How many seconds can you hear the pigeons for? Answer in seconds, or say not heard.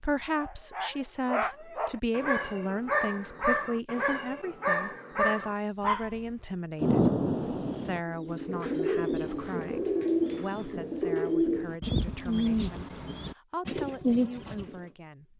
7 s.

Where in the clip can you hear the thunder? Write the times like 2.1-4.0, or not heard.
6.8-8.0.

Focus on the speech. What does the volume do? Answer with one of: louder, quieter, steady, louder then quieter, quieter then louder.
quieter.